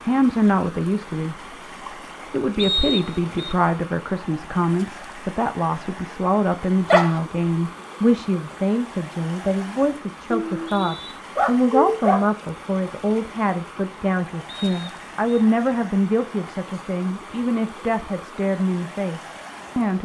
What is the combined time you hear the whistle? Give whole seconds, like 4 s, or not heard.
3 s.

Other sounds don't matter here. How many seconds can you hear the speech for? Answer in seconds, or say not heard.
19 s.